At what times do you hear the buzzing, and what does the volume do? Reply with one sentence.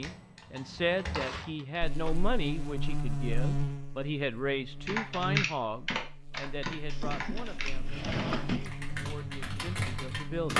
The buzzing can be heard from 1.8 to 10.5 s, getting quieter.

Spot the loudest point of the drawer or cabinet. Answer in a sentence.
The volume of the drawer or cabinet peaks at 8 seconds.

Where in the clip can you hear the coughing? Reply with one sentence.
You can't hear the coughing here.